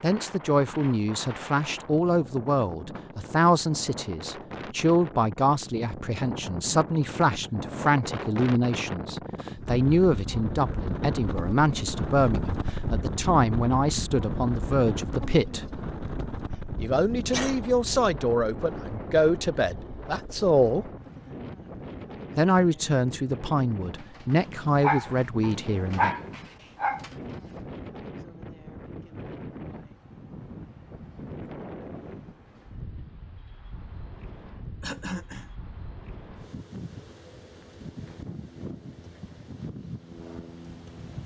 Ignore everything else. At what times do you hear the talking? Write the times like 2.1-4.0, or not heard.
0.0-15.7, 16.8-20.9, 22.4-26.1.